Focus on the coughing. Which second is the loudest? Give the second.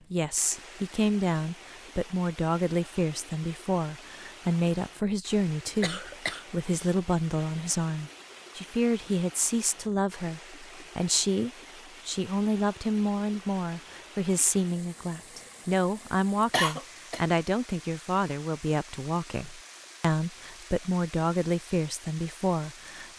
17 s.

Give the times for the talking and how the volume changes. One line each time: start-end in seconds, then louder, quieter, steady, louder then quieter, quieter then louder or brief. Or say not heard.
0.1-23.1 steady.